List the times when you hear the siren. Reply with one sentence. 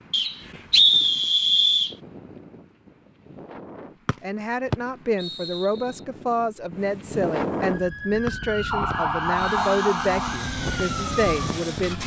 The siren can be heard from 7.5 to 12.0 s.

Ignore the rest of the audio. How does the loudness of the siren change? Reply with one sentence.
The loudness of the siren goes up, then down.